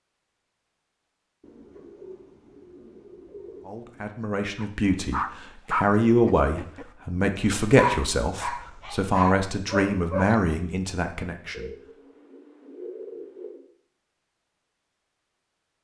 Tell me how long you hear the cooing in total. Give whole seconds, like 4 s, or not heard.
5 s.